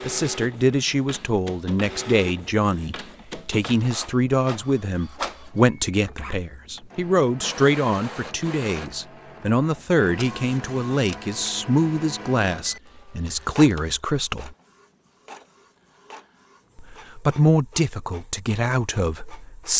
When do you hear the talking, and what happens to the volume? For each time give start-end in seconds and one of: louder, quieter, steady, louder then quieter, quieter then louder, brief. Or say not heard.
0.0-14.5 steady
16.8-19.7 brief.